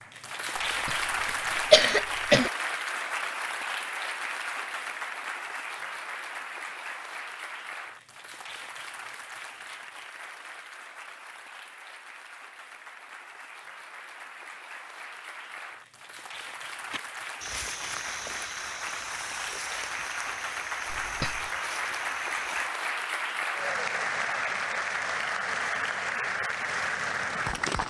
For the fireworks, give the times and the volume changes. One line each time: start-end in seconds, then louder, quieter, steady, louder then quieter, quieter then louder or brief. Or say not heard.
not heard.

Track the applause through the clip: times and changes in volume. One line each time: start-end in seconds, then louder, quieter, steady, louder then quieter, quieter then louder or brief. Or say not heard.
0.0-27.8 quieter then louder.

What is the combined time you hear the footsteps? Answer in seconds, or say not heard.
6 s.